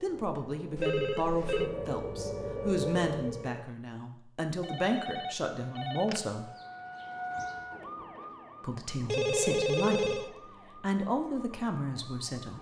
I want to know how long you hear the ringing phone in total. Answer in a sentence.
The ringing phone can be heard for 4 seconds in total.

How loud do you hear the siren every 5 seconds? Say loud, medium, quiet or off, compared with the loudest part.
loud, medium, quiet.